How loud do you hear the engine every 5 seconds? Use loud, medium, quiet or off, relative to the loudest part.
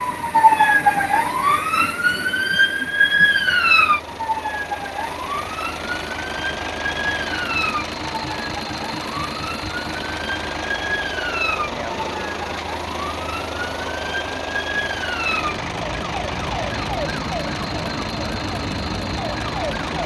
medium, loud, loud, loud.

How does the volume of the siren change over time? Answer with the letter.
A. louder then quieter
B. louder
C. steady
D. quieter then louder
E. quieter
E.